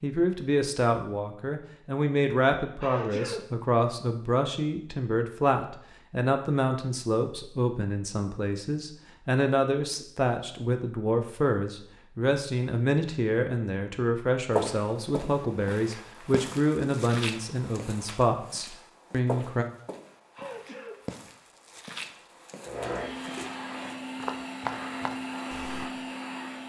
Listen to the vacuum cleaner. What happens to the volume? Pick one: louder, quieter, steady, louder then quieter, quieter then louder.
steady.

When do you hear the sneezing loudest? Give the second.
3 s.